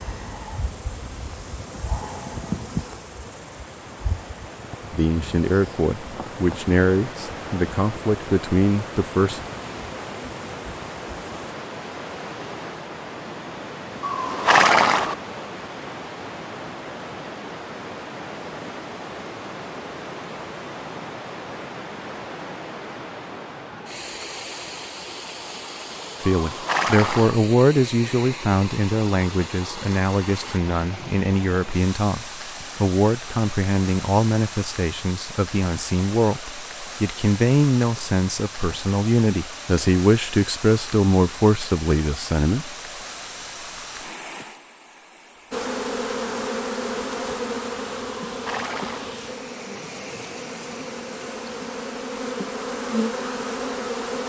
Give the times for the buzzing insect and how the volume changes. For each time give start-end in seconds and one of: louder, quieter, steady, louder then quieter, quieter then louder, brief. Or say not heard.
0.0-11.6 quieter
45.5-54.2 quieter then louder.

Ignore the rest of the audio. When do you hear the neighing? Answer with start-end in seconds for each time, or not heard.
14.0-15.2, 26.3-27.4, 48.2-49.1.